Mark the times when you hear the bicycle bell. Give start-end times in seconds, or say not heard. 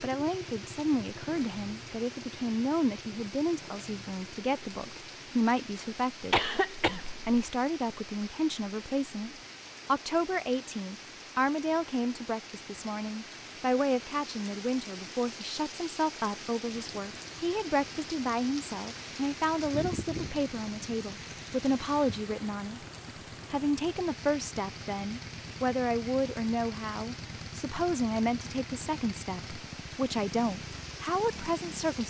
not heard.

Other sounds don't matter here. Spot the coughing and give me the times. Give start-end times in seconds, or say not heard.
6.3-7.4.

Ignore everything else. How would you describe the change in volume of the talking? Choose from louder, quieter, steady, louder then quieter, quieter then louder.
steady.